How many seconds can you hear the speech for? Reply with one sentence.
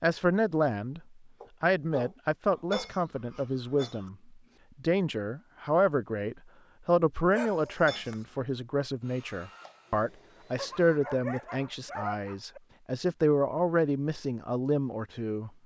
You can hear the speech for 14 seconds altogether.